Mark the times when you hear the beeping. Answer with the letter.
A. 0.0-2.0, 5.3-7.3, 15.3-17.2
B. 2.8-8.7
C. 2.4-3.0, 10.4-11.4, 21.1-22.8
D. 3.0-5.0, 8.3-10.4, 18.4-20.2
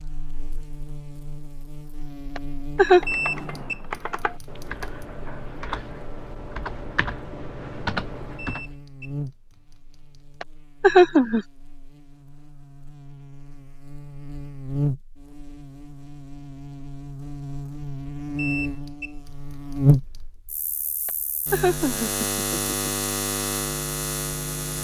D.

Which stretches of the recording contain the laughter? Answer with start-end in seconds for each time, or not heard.
2.4-3.0, 10.4-11.4, 21.1-22.8.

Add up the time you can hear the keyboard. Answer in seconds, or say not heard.
6 s.